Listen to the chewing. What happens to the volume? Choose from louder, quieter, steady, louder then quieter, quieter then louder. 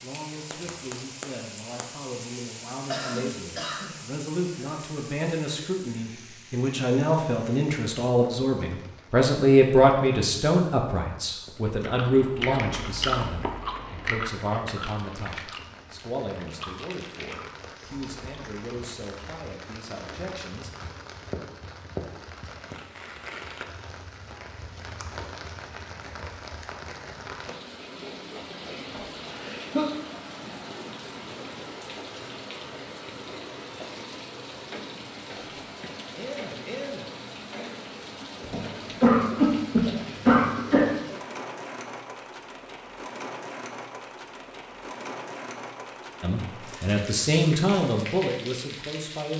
quieter.